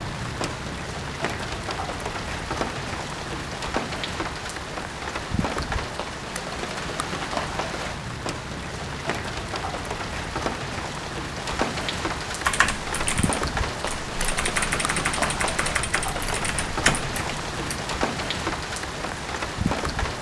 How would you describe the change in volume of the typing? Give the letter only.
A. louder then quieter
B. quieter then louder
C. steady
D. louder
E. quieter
D.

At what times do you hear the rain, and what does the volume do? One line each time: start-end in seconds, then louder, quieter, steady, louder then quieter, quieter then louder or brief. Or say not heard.
0.0-20.1 steady.